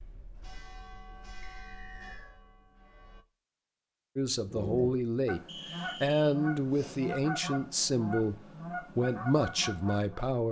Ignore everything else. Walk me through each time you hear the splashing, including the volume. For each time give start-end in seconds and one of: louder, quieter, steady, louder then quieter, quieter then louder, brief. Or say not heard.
not heard.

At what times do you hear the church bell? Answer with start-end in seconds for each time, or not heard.
0.0-3.2.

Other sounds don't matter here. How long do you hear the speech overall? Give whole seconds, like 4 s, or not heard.
6 s.